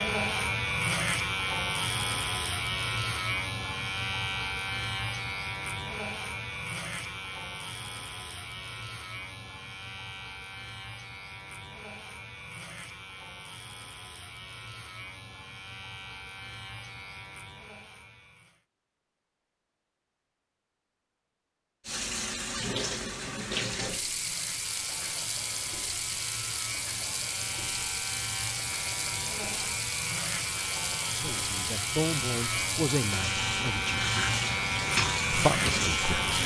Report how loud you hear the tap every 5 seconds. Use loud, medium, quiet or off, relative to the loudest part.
off, off, off, off, loud, loud, loud, loud.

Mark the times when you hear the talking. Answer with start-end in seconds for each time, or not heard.
31.1-34.0, 35.3-36.4.